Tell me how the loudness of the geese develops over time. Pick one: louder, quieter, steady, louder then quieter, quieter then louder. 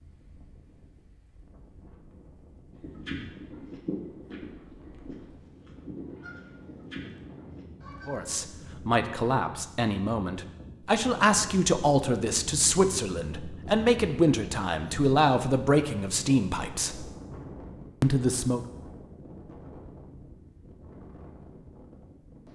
quieter.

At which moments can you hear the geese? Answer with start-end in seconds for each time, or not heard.
2.7-8.3.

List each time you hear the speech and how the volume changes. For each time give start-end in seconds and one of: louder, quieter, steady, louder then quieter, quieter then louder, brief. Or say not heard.
8.1-17.1 steady
18.0-18.6 brief.